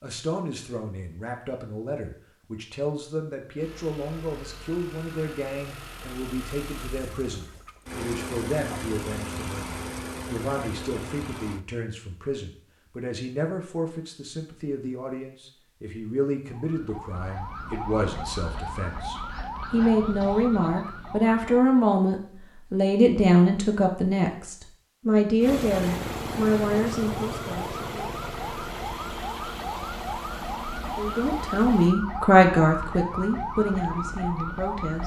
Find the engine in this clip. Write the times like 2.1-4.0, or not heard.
3.5-11.7, 25.4-31.9.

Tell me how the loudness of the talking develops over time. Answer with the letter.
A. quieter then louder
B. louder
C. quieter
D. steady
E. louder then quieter
B.